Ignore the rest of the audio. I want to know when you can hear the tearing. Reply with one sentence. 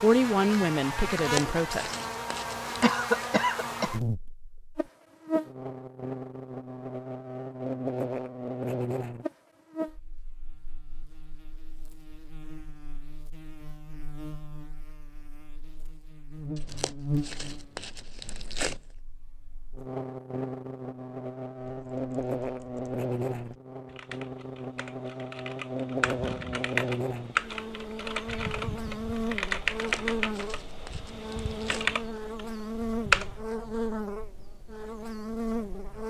The tearing can be heard from 1.1 to 2.8 s, from 16.6 to 18.8 s and from 29.6 to 31.9 s.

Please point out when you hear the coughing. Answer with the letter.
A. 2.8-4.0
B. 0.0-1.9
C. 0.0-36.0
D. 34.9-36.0
A.